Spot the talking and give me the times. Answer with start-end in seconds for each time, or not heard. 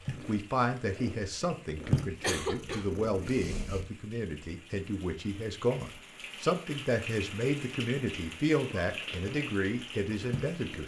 0.2-10.8.